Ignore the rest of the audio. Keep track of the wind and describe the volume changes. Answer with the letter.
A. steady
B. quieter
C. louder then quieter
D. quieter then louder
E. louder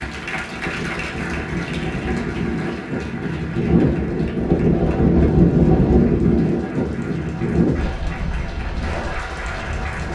C.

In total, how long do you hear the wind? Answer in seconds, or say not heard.
10 s.